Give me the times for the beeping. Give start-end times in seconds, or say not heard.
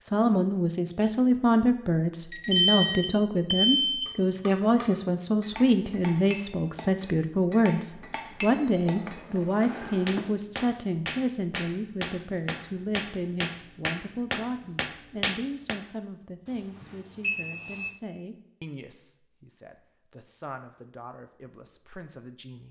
2.3-4.1, 8.4-10.3, 16.4-17.9.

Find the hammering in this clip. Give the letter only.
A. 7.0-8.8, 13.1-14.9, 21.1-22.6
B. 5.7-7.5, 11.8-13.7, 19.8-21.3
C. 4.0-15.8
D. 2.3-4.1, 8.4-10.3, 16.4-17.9
C.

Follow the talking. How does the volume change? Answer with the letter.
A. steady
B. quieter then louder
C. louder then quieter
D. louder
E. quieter
E.